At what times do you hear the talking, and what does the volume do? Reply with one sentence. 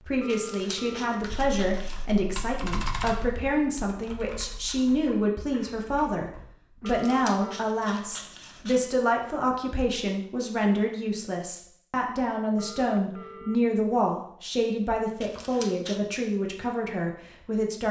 You can hear the talking from 0.0 to 17.8 s, at a steady volume.